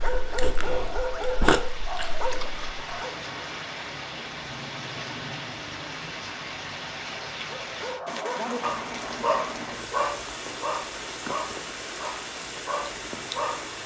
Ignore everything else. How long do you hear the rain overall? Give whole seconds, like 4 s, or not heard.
14 s.